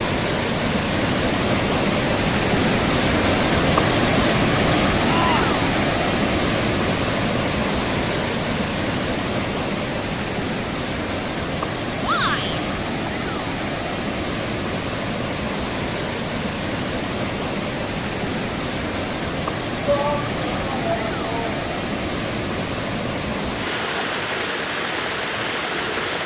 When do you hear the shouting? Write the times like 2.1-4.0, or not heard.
5.0-5.6, 12.0-12.6, 19.9-21.6.